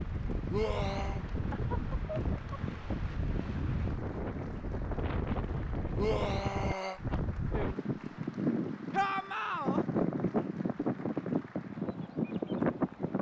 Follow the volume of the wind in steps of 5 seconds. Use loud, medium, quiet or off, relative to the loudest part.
medium, loud, loud.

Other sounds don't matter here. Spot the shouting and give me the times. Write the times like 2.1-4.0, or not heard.
0.5-1.2, 6.0-7.0, 8.9-9.8.